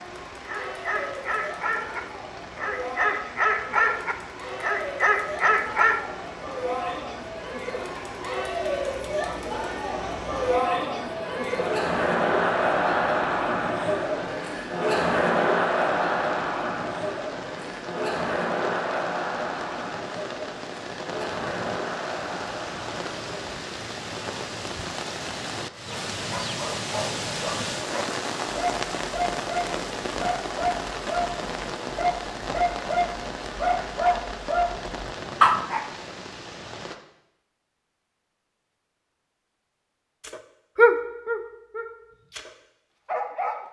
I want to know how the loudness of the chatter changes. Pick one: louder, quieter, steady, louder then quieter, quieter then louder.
louder then quieter.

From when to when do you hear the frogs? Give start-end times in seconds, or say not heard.
not heard.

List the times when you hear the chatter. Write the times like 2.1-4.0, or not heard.
0.0-23.5.